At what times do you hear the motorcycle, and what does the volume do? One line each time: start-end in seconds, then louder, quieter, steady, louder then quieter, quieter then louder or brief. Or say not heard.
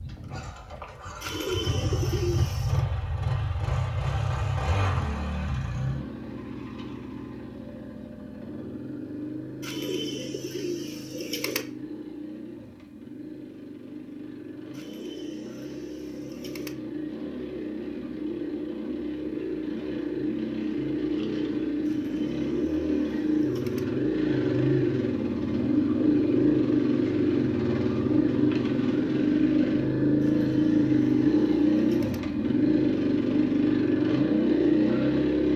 0.0-35.5 quieter then louder.